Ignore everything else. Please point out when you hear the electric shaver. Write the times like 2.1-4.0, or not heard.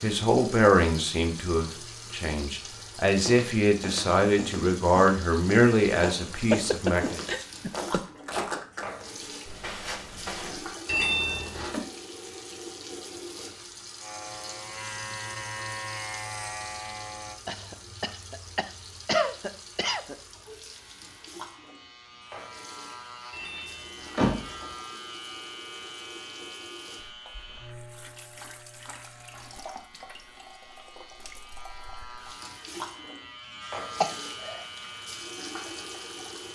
14.0-17.4, 20.6-36.5.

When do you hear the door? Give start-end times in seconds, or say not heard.
10.8-11.8, 23.3-24.6.